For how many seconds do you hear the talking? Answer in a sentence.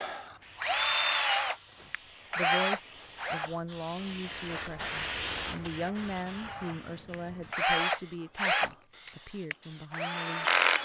You can hear the talking for 8 seconds altogether.